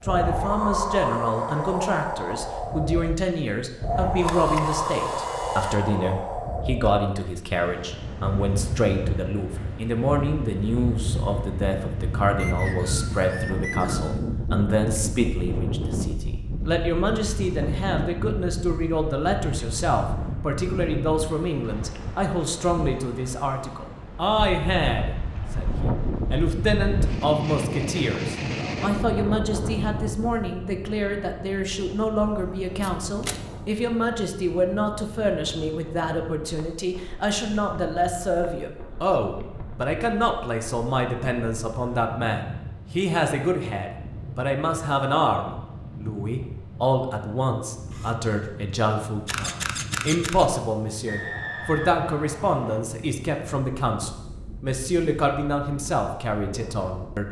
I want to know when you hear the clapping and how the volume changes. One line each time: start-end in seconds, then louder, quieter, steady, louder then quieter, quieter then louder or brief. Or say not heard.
not heard.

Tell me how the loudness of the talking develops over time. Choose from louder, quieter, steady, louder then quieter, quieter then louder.
steady.